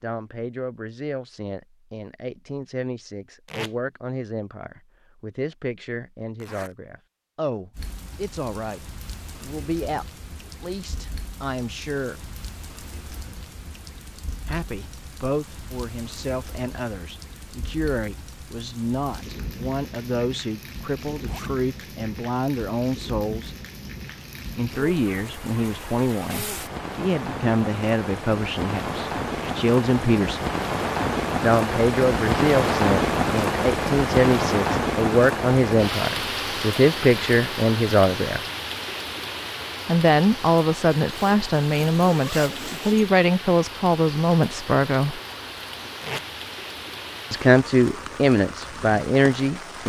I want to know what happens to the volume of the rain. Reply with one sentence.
The volume of the rain goes up, then down.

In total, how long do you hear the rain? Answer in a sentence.
The rain can be heard for 42 seconds in total.